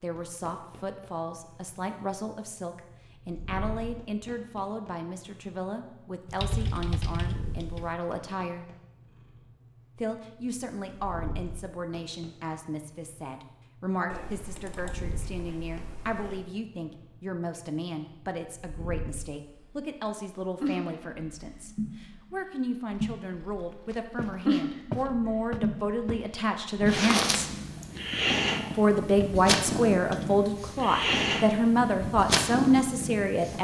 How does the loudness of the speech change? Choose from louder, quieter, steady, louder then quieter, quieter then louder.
louder.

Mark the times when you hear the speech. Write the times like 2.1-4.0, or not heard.
0.0-8.7, 9.9-27.5, 28.8-33.5.